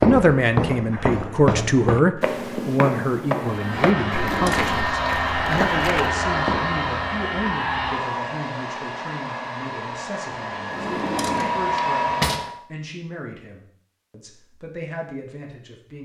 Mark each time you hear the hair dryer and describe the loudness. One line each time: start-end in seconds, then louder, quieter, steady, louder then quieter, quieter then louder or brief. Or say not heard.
3.3-12.6 quieter then louder.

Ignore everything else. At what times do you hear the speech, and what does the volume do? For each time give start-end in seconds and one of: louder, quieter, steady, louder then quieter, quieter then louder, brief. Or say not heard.
0.0-15.9 quieter.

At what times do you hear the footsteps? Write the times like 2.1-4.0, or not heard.
0.0-6.8.